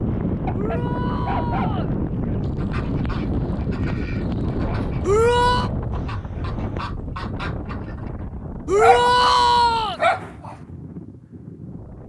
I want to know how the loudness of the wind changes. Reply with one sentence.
The volume of the wind goes down.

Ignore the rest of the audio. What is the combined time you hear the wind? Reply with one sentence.
The wind can be heard for 12 seconds in total.